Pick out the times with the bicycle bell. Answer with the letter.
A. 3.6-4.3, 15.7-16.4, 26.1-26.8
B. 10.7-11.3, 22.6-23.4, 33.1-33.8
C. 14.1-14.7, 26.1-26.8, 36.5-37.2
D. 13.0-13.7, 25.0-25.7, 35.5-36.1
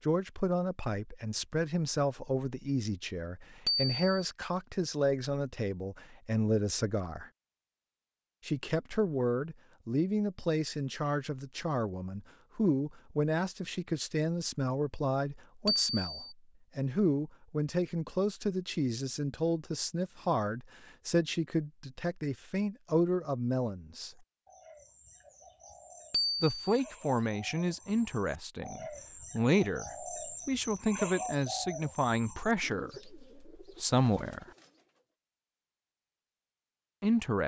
A.